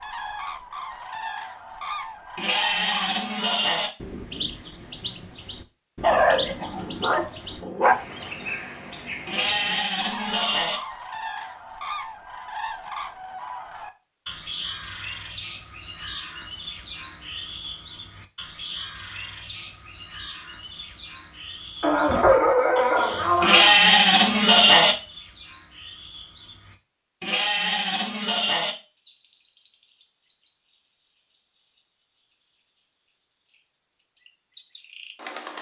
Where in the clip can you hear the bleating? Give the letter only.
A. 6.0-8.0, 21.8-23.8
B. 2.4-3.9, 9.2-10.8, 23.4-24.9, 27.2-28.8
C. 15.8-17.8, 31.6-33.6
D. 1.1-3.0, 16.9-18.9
B.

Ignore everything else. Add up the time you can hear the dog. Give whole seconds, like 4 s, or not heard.
4 s.